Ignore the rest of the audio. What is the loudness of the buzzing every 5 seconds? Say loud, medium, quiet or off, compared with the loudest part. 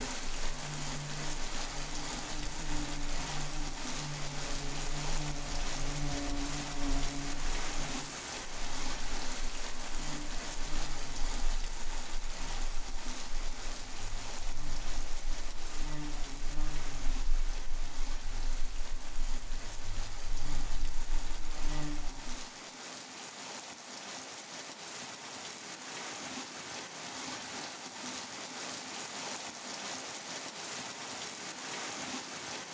loud, loud, medium, medium, medium, off, off.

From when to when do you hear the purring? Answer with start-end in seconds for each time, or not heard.
not heard.